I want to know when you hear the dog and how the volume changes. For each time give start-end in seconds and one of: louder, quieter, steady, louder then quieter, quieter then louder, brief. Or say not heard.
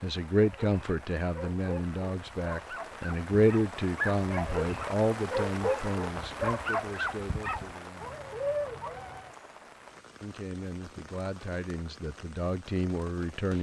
0.3-9.3 louder.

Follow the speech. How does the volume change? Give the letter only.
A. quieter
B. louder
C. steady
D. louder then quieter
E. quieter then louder
E.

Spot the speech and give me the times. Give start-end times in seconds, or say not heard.
0.0-8.2, 10.2-13.5.